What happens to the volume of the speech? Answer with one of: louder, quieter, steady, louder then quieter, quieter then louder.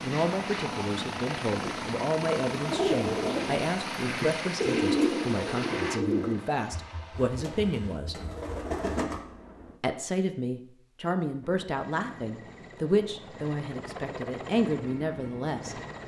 steady.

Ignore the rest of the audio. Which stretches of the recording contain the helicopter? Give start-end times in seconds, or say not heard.
0.0-9.8, 11.4-16.0.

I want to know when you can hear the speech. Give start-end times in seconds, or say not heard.
0.0-8.2, 9.8-15.8.